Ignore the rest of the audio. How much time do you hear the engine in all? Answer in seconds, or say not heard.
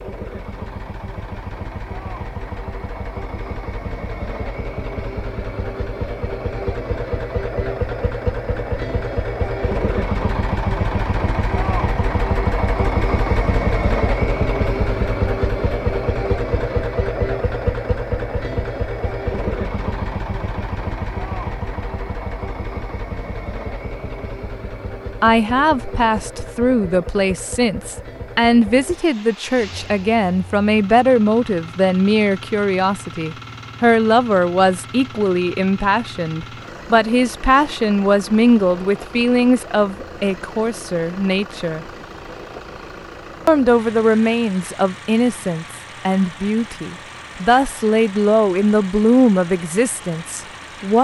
51 s.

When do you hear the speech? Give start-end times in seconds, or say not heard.
25.2-41.9, 43.5-51.0.